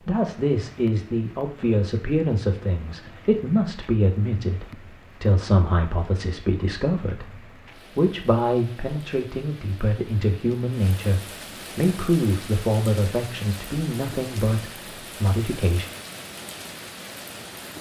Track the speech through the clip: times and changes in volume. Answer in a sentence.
The speech can be heard from 0.0 to 15.8 s, at a steady volume.